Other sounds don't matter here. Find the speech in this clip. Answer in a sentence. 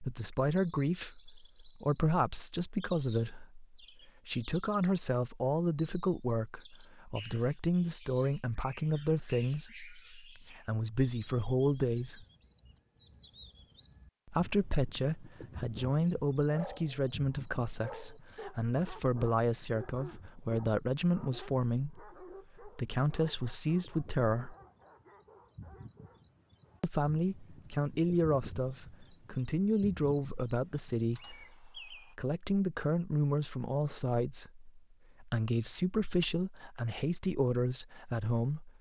The speech can be heard from 0.0 to 12.2 s, from 14.2 to 24.6 s and from 26.8 to 38.7 s.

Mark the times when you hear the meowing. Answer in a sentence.
You can't hear the meowing here.